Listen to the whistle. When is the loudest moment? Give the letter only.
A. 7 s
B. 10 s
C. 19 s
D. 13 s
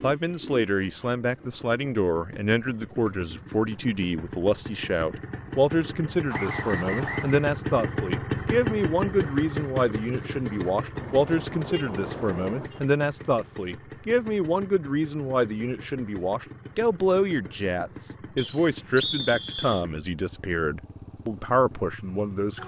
C.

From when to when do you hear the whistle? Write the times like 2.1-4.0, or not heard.
6.3-7.5, 18.4-19.9.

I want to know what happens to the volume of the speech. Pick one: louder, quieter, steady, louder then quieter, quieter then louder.
steady.